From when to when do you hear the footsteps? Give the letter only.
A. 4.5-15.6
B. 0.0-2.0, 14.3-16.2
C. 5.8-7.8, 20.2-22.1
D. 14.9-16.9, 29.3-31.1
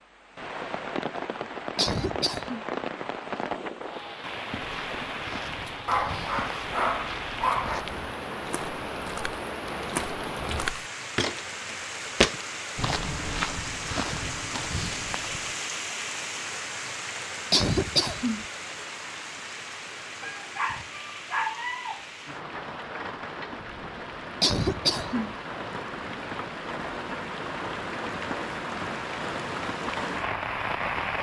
A.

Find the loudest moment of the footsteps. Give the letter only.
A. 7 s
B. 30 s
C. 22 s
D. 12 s
D.